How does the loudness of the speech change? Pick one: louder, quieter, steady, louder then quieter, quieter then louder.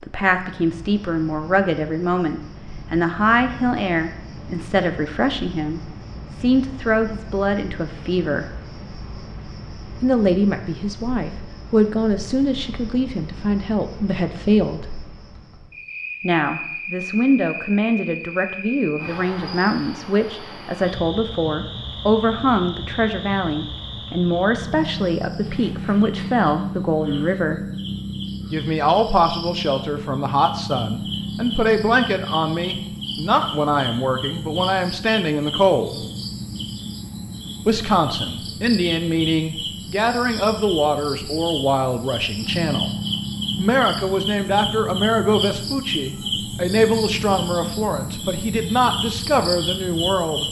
steady.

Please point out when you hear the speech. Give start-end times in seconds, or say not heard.
0.0-8.5, 10.0-14.8, 16.2-27.6, 28.5-36.0, 37.6-42.9, 43.5-50.4.